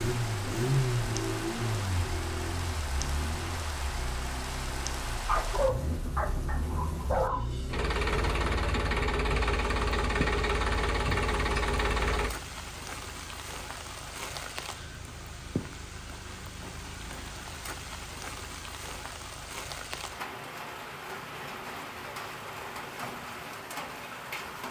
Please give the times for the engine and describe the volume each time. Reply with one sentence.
The engine can be heard from 0.0 to 12.3 s, getting quieter then louder.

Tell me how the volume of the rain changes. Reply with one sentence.
The loudness of the rain stays about the same.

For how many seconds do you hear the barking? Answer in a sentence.
The barking can be heard for 2 seconds in total.